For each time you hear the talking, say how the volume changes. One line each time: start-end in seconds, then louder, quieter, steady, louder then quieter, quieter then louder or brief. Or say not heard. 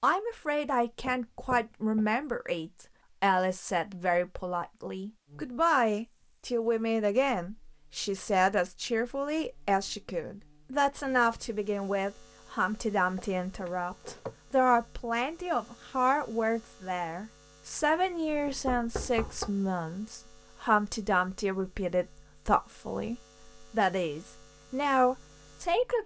0.0-26.0 steady.